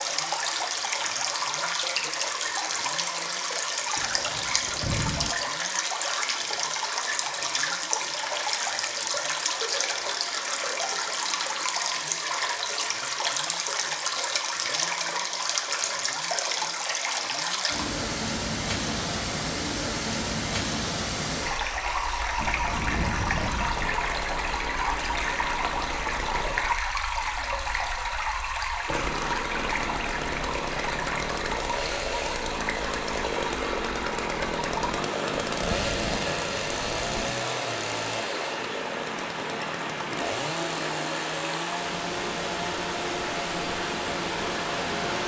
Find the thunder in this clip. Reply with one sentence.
The thunder can be heard from 4.0 to 5.3 s, from 22.4 to 23.9 s and from 35.5 to 37.4 s.